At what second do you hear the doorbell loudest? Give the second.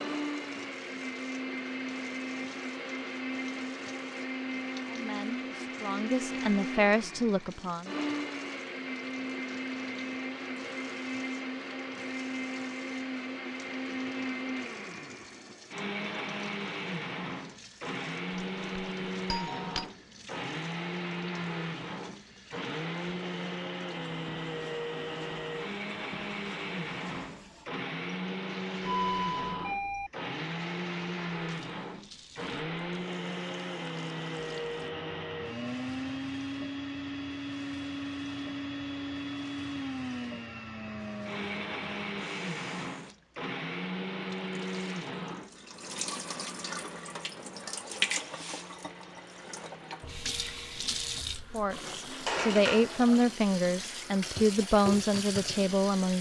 29 s.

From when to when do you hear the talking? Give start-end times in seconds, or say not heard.
4.9-8.0, 51.5-56.1.